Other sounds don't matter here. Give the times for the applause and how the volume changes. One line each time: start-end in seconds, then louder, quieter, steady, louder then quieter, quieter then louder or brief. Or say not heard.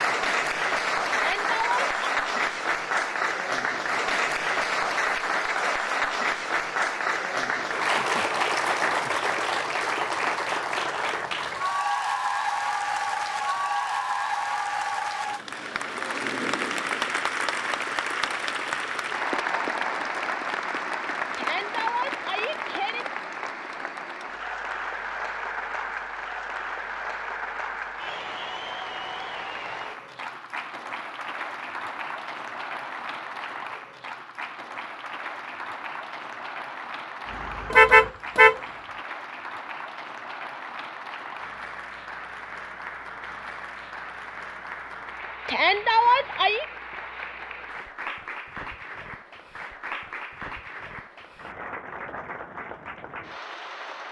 0.0-54.0 quieter.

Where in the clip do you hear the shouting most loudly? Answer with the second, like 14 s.
46 s.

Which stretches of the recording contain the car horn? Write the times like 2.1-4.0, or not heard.
37.7-38.6.